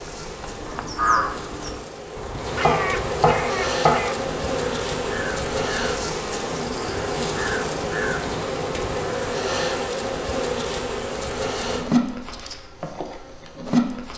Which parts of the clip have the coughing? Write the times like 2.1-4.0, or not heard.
not heard.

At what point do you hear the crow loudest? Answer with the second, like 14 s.
1 s.